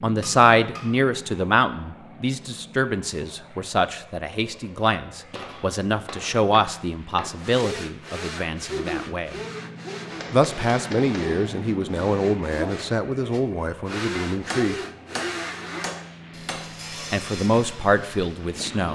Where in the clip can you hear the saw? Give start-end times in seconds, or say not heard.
7.4-18.6.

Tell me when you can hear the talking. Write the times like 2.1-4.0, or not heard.
0.0-9.3, 10.3-14.8, 17.1-18.8.